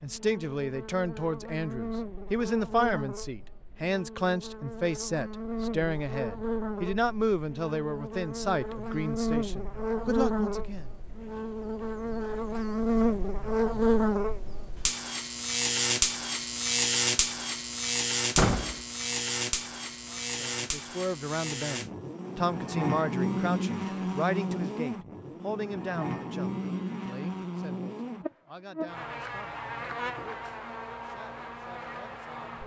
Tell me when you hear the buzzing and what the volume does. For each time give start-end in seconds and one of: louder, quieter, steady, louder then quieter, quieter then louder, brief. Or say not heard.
0.0-32.6 louder then quieter.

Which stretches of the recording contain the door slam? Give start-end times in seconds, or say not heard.
18.4-18.8.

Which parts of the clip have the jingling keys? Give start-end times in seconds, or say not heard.
not heard.